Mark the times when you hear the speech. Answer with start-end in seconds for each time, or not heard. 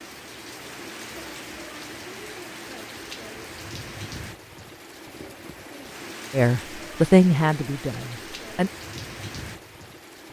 6.3-8.7.